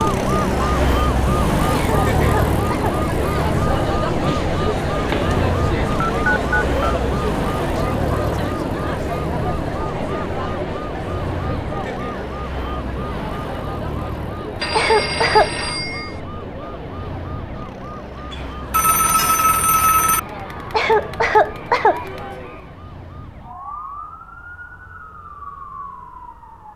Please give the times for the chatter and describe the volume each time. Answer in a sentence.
The chatter can be heard from 0.0 to 22.8 s, getting quieter.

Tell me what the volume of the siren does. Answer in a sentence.
The volume of the siren goes down.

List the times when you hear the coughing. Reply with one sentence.
The coughing can be heard from 1.7 to 3.0 s, from 14.7 to 15.5 s and from 20.7 to 22.0 s.